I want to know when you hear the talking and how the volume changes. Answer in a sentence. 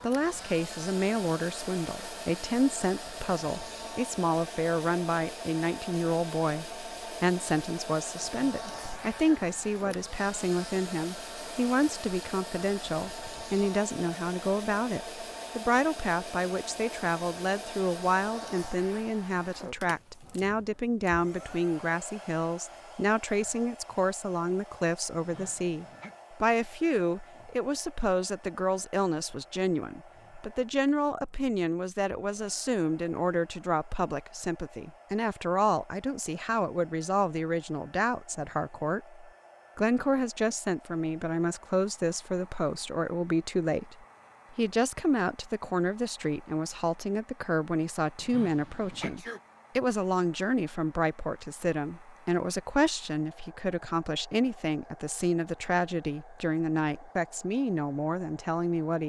The talking can be heard from 0.0 to 59.0 s, at a steady volume.